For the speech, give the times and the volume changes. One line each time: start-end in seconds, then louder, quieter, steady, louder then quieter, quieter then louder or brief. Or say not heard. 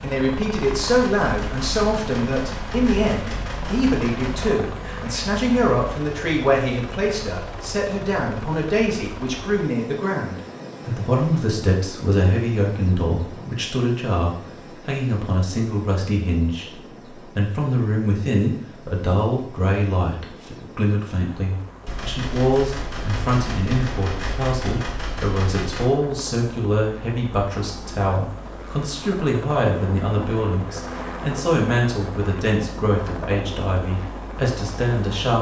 0.0-35.3 steady.